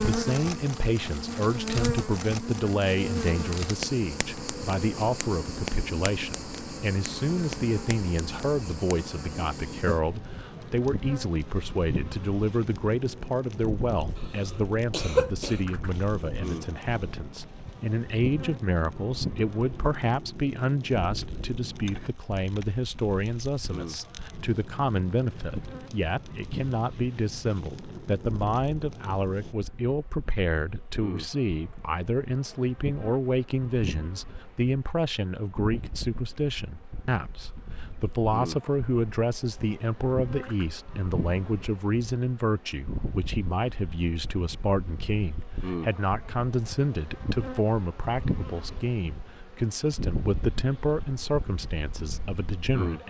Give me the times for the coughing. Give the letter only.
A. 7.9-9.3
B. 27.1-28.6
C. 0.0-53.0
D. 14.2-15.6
D.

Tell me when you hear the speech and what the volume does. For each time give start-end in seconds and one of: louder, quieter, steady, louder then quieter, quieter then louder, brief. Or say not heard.
0.0-53.0 steady.